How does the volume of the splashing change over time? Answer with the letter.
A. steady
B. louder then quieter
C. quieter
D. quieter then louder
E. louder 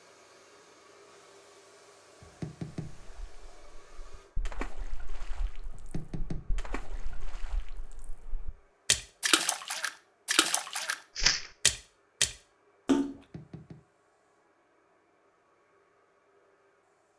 D.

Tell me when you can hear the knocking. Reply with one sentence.
The knocking can be heard from 2.2 to 3.1 s, from 5.7 to 7.2 s and from 13.1 to 13.8 s.